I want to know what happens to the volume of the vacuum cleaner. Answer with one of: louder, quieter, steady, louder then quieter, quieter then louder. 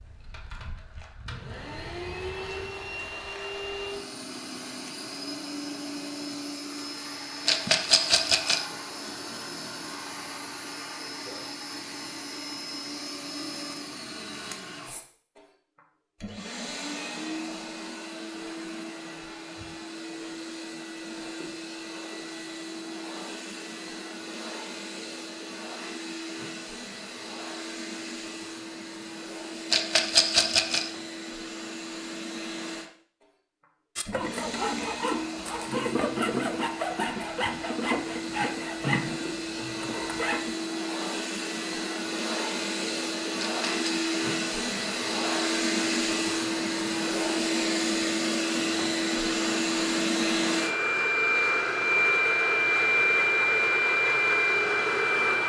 louder.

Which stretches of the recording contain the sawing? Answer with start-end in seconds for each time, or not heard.
34.0-40.5.